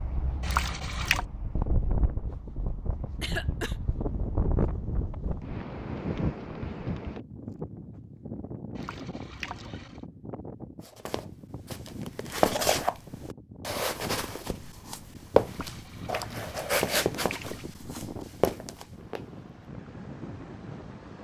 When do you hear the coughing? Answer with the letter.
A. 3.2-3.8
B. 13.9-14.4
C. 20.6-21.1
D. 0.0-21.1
A.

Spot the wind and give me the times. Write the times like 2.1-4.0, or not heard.
0.0-21.1.